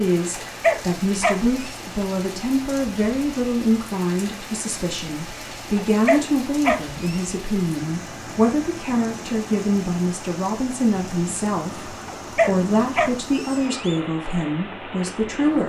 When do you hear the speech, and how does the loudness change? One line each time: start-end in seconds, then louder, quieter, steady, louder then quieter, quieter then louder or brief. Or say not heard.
0.0-15.6 steady.